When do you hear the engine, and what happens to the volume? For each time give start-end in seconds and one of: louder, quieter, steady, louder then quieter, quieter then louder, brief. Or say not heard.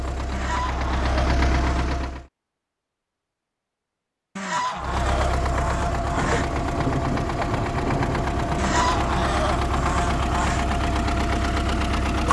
0.0-2.3 brief
4.8-12.2 steady.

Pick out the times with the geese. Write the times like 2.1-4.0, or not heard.
0.3-2.1, 4.3-6.5, 8.6-10.7.